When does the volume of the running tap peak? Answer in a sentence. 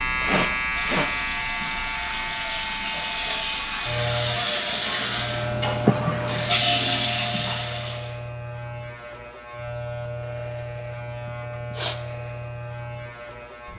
The volume of the running tap peaks at 7 seconds.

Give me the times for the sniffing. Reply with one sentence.
The sniffing can be heard from 0.2 to 1.1 s, from 5.8 to 6.6 s and from 11.2 to 11.9 s.